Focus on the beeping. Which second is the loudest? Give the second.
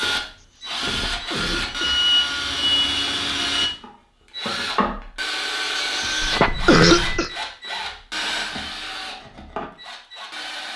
2 s.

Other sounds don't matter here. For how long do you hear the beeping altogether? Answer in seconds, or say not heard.
3 s.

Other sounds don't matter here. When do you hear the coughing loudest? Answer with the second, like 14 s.
7 s.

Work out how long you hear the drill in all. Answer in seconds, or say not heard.
11 s.